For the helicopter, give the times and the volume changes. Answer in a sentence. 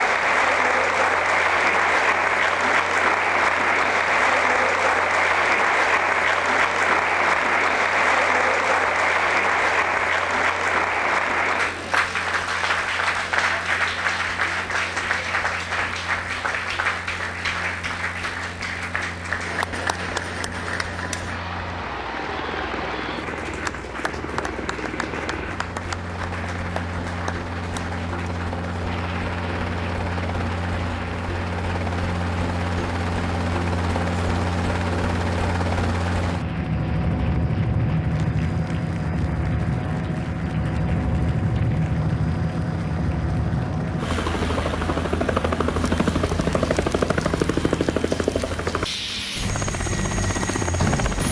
The helicopter can be heard from 0.0 to 51.2 s, getting louder.